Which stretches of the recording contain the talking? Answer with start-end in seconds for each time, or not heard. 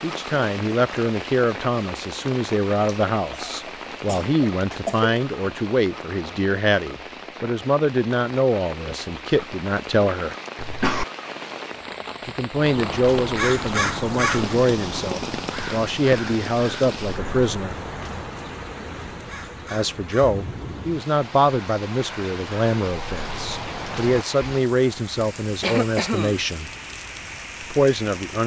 0.0-10.3, 12.2-17.8, 19.7-26.7, 27.7-28.4.